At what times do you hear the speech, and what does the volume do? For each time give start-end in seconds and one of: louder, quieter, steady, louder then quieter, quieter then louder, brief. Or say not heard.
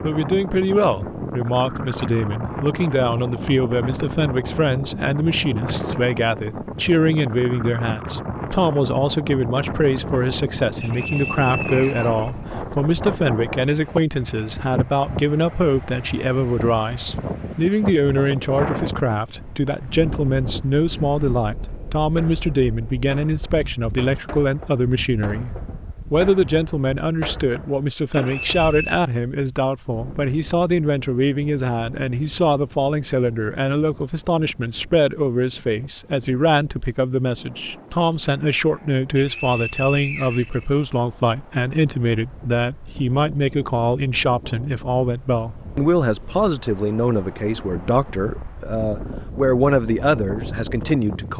0.0-25.5 steady
26.1-51.3 steady.